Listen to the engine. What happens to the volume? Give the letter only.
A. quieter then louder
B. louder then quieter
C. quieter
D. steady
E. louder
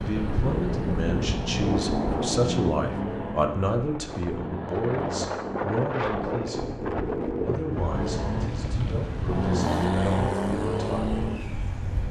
A.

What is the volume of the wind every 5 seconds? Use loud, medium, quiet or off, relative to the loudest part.
loud, loud, off.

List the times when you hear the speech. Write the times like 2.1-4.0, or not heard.
0.0-6.8, 7.5-11.1.